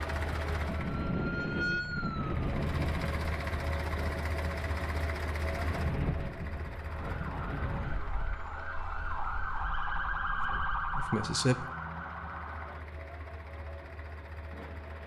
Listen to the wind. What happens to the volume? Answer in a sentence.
The loudness of the wind goes down.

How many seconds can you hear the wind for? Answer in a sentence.
You can hear the wind for 11 seconds altogether.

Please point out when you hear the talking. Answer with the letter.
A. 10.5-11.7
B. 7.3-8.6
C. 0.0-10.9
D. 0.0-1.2
A.